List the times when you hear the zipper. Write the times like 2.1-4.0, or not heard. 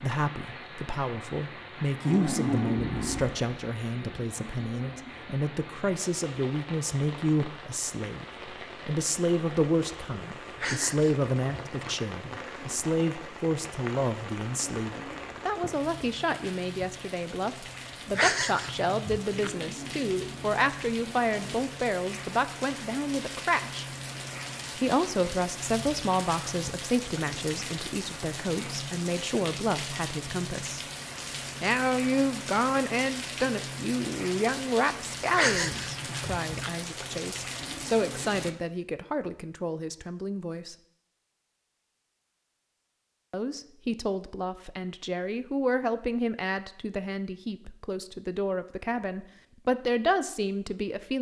2.0-3.4, 19.4-21.6, 37.6-38.4.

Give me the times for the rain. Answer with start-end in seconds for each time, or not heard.
0.0-38.5.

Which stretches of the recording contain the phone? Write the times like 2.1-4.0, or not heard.
not heard.